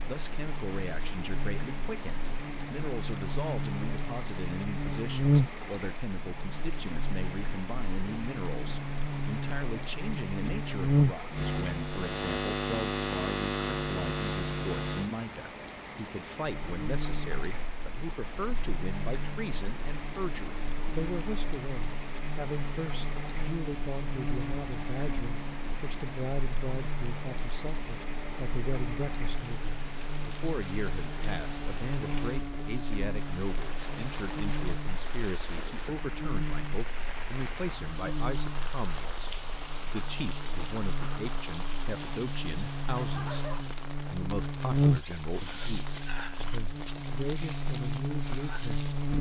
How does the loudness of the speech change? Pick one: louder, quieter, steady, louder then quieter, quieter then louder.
steady.